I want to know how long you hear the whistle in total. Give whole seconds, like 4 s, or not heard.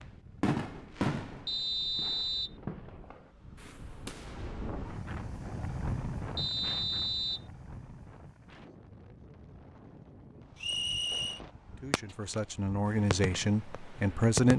3 s.